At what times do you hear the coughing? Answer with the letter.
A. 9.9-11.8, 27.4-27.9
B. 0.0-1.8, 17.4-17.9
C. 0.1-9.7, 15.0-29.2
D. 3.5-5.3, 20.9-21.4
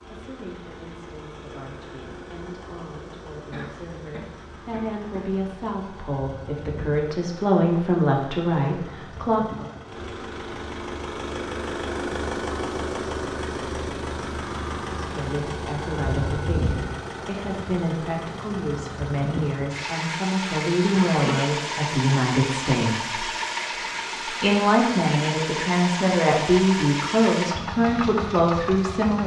D.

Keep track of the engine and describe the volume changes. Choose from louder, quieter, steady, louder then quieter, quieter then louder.
louder.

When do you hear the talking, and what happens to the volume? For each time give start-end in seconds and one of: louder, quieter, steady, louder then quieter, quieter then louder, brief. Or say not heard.
0.1-9.7 louder
15.0-29.2 louder.